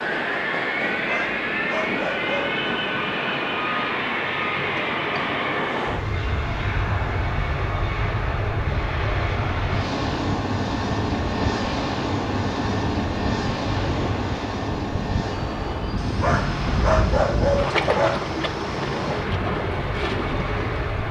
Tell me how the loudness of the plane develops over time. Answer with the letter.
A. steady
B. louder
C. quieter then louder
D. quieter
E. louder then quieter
D.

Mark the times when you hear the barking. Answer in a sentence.
You can hear the barking from 1.1 to 2.6 s and from 16.2 to 18.2 s.